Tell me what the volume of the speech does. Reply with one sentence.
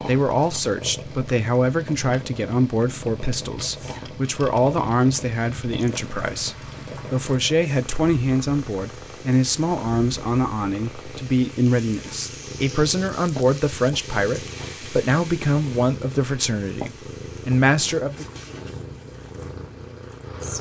The loudness of the speech stays about the same.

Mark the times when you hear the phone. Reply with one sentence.
You can't hear the phone here.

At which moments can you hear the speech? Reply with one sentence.
The speech can be heard from 0.0 to 18.4 s.